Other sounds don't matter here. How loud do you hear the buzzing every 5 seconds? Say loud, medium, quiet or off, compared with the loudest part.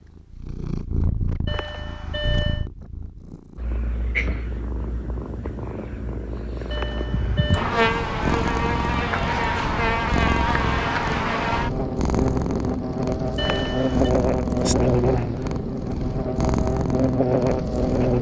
off, loud, loud, loud.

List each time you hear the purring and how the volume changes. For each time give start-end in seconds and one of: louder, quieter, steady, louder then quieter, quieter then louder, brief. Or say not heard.
0.0-18.1 louder.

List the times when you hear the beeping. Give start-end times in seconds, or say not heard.
1.4-2.6, 6.7-7.7, 13.3-14.1.